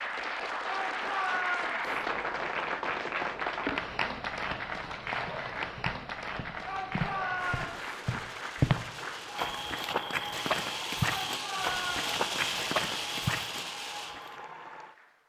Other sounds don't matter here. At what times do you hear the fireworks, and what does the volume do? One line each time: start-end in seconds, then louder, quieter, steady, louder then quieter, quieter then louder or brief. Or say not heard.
7.3-14.2 louder.